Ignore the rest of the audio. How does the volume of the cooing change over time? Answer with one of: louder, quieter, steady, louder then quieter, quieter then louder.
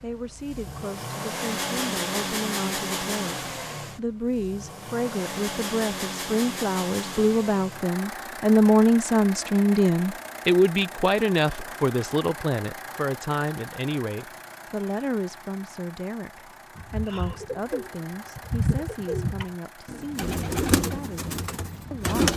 louder then quieter.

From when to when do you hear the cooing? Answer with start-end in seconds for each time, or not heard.
16.8-22.3.